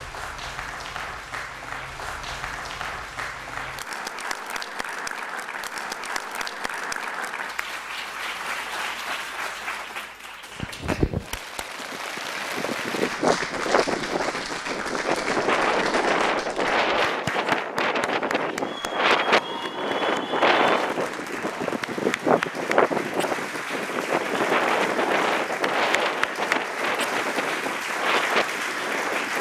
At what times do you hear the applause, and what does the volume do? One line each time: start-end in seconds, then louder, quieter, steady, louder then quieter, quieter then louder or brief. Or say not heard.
0.0-29.3 steady.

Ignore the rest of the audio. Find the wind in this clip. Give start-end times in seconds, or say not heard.
11.8-29.3.